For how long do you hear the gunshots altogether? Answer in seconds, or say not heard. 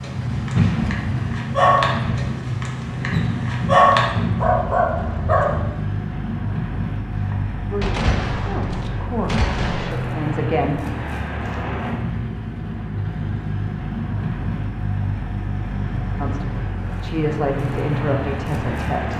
3 s.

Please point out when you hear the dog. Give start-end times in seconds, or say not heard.
0.0-5.5.